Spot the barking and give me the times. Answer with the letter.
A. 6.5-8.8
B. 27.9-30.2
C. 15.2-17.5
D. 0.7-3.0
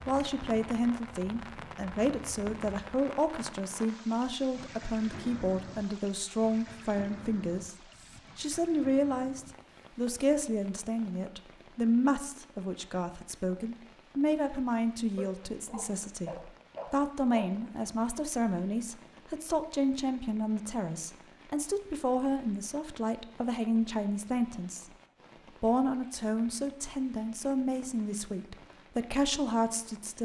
C.